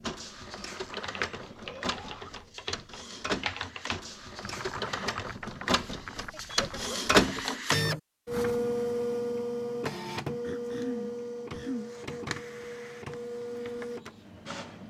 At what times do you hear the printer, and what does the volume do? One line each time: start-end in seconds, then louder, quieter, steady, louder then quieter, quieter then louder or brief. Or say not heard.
0.0-14.8 louder then quieter.